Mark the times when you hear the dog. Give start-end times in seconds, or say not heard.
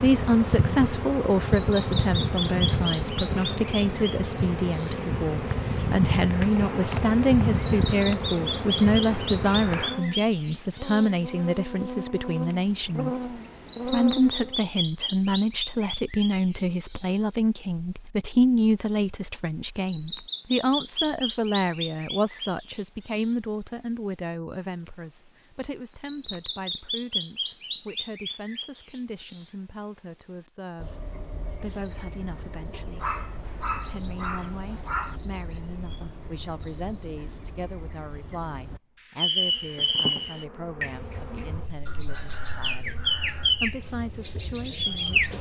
33.0-35.2.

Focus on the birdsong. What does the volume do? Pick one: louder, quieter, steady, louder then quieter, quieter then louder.
quieter then louder.